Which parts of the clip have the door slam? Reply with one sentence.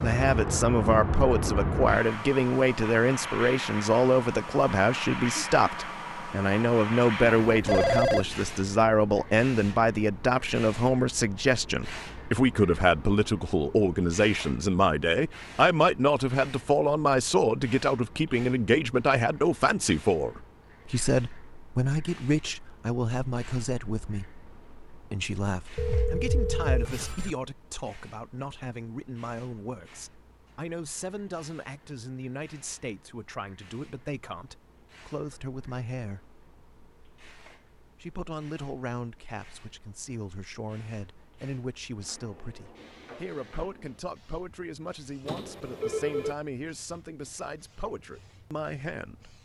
You can't hear the door slam here.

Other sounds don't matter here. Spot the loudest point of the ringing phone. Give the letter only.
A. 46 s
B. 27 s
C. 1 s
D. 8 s
D.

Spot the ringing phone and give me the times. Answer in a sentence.
You can hear the ringing phone from 7.4 to 8.2 s, from 25.8 to 27.4 s and from 45.2 to 46.4 s.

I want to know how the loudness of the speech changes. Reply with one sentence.
The volume of the speech goes down.